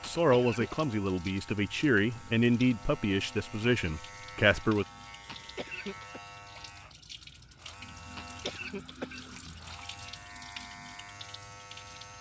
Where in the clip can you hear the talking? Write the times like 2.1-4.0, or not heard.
0.0-4.8.